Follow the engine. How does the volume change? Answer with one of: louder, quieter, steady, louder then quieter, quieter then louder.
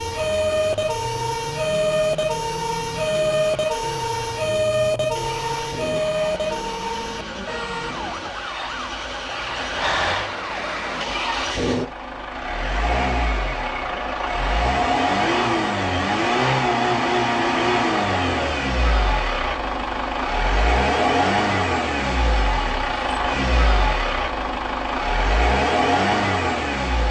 louder.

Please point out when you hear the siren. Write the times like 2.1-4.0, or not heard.
0.0-11.1.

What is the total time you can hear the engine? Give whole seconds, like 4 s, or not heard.
27 s.